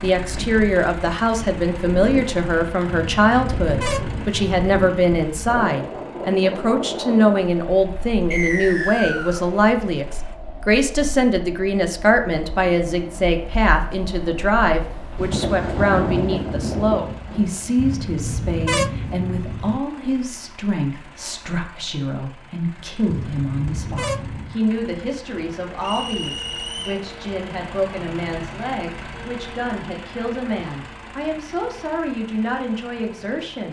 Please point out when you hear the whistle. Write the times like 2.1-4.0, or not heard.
8.3-9.4, 25.8-27.0.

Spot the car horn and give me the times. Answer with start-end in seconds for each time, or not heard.
2.9-4.8, 17.8-19.8, 23.1-24.6.